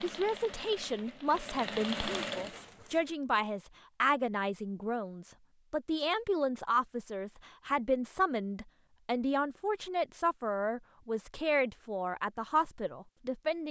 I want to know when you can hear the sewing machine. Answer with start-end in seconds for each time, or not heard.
0.0-3.0.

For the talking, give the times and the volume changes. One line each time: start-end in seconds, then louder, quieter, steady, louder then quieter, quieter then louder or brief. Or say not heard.
0.0-13.6 steady.